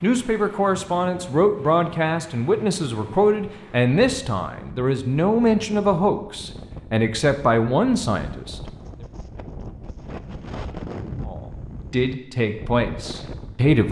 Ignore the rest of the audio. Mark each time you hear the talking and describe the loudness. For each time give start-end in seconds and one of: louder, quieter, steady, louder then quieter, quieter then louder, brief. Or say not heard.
0.0-8.6 steady
11.2-13.8 brief.